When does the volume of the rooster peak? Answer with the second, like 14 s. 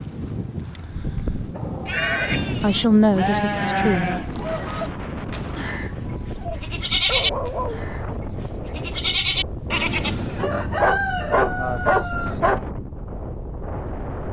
11 s.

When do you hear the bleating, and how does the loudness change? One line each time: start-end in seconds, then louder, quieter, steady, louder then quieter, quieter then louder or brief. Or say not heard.
0.8-10.4 quieter then louder.